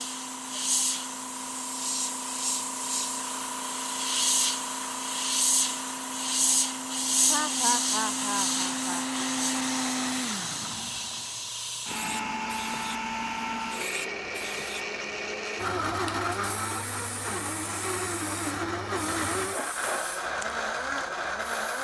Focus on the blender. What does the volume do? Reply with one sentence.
The volume of the blender goes up.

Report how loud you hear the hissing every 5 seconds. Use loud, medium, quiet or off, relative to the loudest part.
loud, loud, medium, quiet, quiet.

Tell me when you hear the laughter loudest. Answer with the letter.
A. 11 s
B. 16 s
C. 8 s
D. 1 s
C.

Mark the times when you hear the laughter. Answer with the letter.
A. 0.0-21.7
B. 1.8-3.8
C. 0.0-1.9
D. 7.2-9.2
D.